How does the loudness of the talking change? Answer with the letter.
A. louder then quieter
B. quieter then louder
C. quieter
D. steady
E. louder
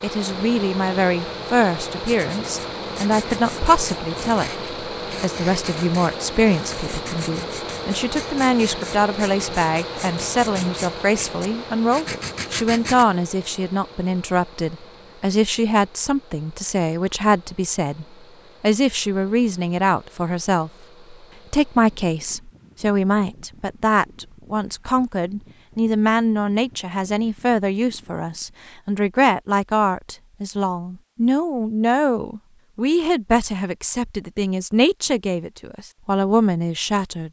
D.